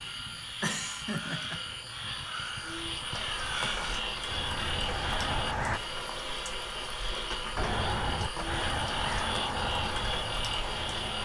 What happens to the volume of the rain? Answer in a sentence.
The loudness of the rain stays about the same.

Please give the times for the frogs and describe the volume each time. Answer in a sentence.
You can hear the frogs from 0.0 to 11.2 s, at a steady volume.